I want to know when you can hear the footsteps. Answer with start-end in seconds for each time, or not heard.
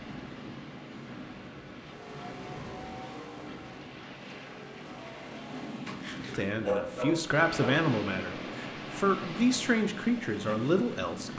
not heard.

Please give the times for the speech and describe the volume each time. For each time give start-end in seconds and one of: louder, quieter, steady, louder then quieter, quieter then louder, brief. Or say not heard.
6.3-11.3 steady.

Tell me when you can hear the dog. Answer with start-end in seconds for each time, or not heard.
5.8-7.8.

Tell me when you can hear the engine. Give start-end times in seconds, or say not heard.
1.8-5.8.